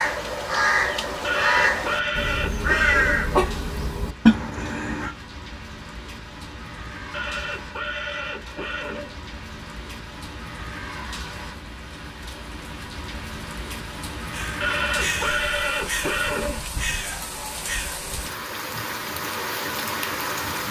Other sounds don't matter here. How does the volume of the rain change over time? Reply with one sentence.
The loudness of the rain goes up.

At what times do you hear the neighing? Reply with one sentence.
The neighing can be heard from 1.2 to 3.2 s, from 7.1 to 9.2 s and from 14.6 to 16.6 s.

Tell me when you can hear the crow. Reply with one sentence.
The crow can be heard from 0.0 to 5.2 s and from 14.3 to 18.0 s.